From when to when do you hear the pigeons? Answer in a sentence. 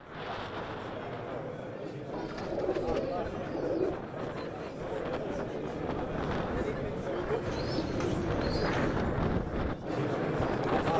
You can hear the pigeons from 2.1 to 4.0 s and from 7.5 to 9.1 s.